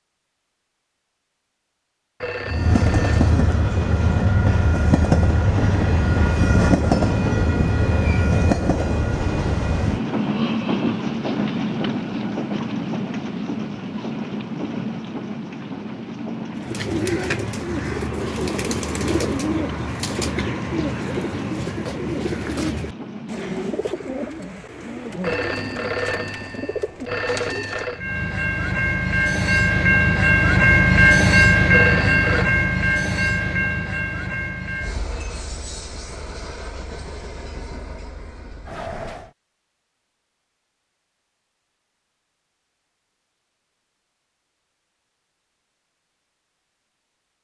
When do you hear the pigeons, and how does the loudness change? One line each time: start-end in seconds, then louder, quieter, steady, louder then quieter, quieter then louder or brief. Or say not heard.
16.6-27.9 quieter.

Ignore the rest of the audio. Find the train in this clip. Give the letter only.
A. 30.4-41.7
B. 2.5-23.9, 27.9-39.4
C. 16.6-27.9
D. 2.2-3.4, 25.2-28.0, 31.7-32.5
B.